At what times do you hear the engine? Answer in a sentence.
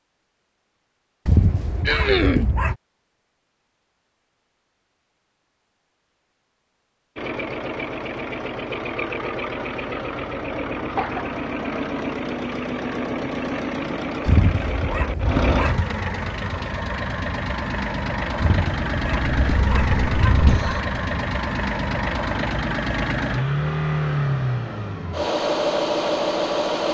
You can hear the engine from 7.2 to 26.8 s.